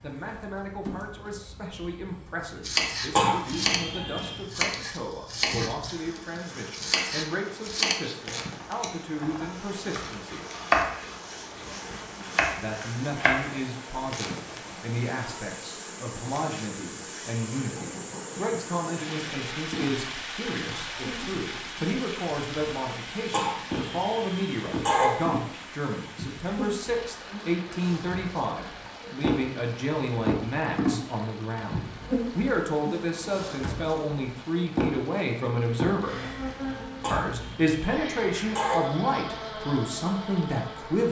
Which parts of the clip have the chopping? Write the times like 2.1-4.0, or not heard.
2.6-13.6.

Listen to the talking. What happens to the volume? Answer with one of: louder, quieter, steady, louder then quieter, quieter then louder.
louder.